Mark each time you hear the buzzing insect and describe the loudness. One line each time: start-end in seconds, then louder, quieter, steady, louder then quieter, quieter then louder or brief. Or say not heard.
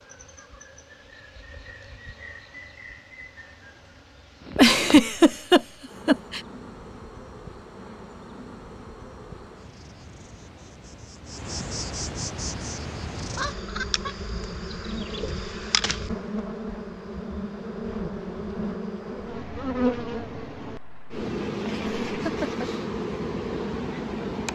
0.0-24.5 louder.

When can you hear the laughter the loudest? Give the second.
5 s.